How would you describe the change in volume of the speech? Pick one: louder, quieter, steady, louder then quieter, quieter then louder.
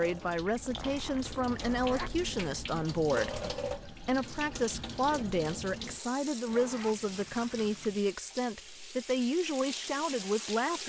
steady.